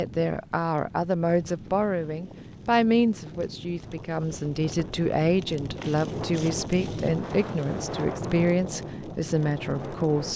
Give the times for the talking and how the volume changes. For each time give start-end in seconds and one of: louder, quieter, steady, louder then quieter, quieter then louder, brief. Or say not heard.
0.0-10.3 steady.